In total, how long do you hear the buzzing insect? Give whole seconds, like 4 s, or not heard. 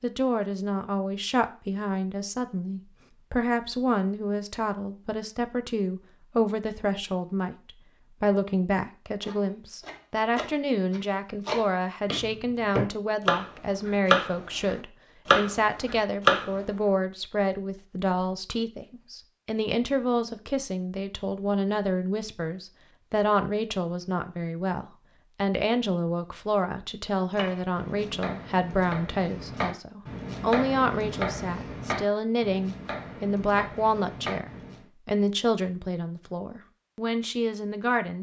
not heard.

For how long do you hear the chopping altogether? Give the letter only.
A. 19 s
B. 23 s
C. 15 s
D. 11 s
C.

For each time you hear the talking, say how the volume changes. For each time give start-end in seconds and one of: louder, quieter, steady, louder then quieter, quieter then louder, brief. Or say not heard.
0.0-38.1 steady.